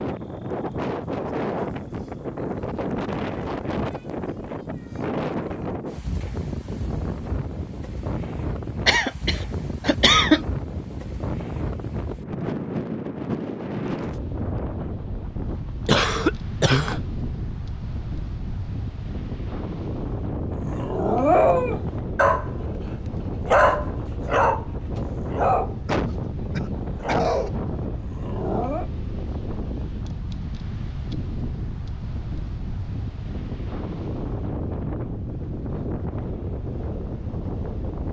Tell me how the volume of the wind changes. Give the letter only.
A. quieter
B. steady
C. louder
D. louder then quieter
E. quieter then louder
B.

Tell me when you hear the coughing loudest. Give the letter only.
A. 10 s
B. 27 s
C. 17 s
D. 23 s
A.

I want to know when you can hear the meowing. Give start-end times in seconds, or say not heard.
not heard.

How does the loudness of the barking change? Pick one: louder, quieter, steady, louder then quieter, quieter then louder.
quieter.